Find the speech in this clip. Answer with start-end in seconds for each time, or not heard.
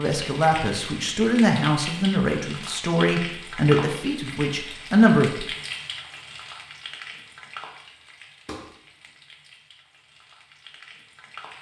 0.0-5.5.